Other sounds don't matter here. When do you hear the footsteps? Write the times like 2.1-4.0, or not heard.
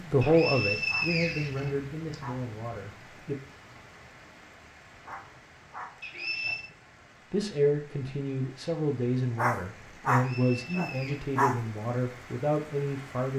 not heard.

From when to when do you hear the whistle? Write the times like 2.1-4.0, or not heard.
0.2-2.1, 6.0-6.7, 10.2-11.2.